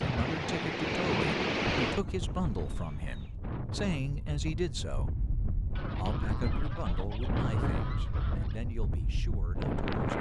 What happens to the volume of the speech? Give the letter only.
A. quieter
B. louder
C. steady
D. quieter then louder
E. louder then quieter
A.